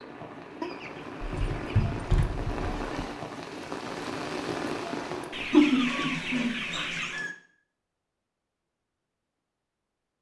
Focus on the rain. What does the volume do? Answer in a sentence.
The loudness of the rain goes up.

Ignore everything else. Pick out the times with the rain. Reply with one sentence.
You can hear the rain from 0.0 to 5.7 s.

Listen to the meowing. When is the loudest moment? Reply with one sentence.
The volume of the meowing peaks at 6 seconds.